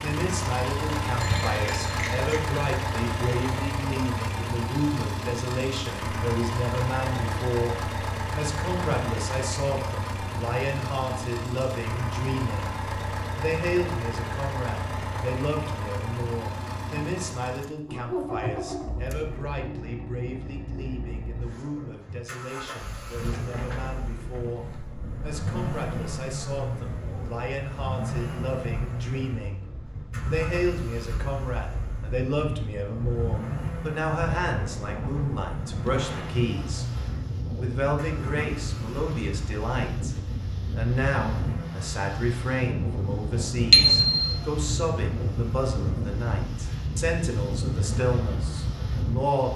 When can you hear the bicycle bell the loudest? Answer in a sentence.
The volume of the bicycle bell peaks at 44 seconds.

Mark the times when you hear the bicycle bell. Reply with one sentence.
You can hear the bicycle bell from 1.2 to 2.3 s and from 43.7 to 44.2 s.